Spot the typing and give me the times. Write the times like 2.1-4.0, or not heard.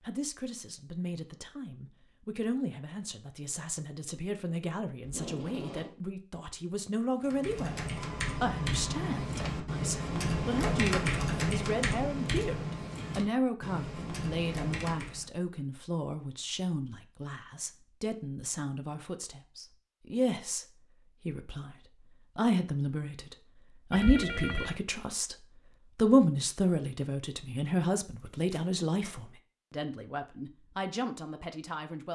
7.2-15.2.